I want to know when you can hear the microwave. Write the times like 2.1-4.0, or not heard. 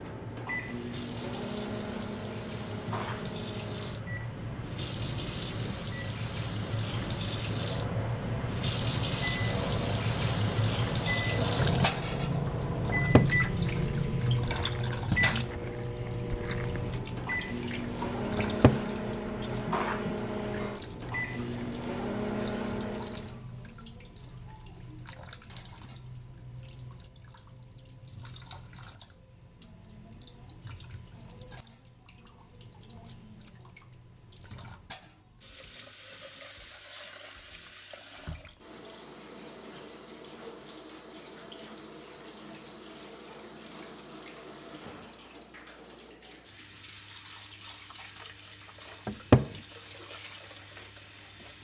0.0-23.4.